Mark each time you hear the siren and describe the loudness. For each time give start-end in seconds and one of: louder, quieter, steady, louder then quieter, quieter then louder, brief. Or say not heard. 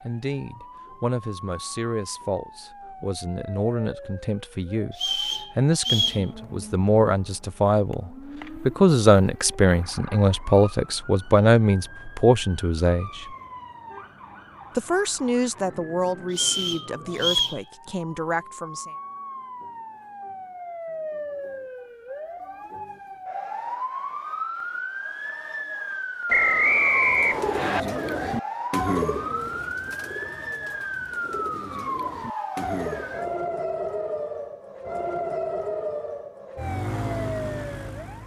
0.0-38.2 louder.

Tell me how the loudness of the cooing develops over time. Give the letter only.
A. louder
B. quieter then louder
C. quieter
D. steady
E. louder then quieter
B.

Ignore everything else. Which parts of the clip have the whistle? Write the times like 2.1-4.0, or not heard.
4.9-6.2, 16.3-17.6, 26.2-27.8.